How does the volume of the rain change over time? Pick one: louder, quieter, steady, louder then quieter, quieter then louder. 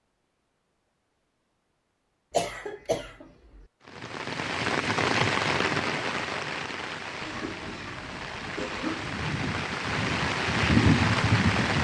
quieter then louder.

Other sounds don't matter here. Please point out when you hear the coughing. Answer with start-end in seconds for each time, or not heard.
2.3-3.6, 7.2-9.2.